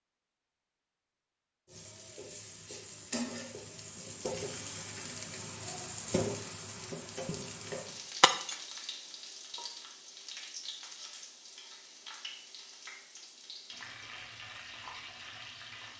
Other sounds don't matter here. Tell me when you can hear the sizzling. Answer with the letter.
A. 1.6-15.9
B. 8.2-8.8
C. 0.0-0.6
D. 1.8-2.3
A.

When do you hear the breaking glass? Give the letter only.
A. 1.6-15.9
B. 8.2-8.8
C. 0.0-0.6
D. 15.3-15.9
B.